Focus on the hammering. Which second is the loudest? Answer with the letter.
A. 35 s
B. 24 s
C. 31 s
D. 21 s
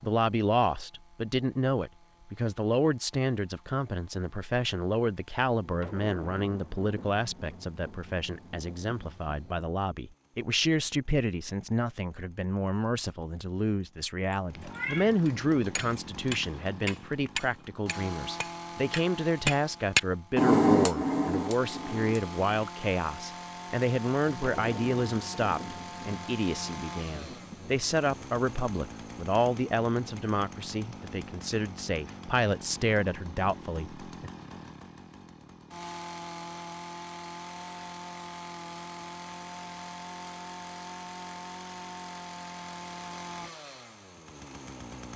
D.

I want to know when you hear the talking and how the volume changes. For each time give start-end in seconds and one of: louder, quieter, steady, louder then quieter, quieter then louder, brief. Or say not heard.
0.0-34.0 steady.